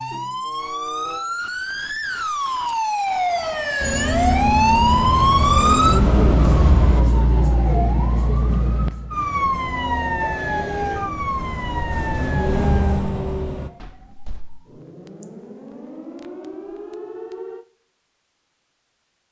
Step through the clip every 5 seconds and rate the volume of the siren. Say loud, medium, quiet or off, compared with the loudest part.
loud, loud, medium, quiet.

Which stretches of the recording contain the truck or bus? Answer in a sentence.
You can hear the truck or bus from 3.8 to 7.0 s and from 9.3 to 13.7 s.